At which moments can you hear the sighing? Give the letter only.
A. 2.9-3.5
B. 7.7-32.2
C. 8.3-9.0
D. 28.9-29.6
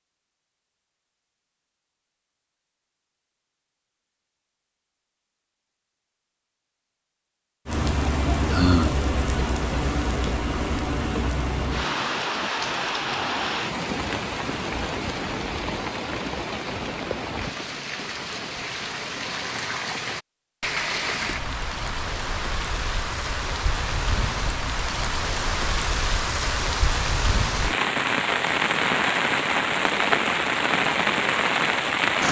C.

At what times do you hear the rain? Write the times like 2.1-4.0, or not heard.
7.7-32.2.